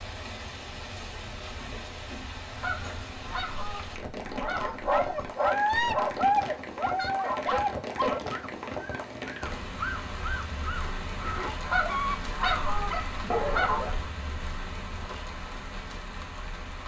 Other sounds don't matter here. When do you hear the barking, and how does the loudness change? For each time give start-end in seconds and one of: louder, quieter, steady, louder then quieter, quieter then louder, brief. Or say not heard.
4.3-14.0 quieter then louder.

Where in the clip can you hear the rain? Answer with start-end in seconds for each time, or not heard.
0.0-16.8.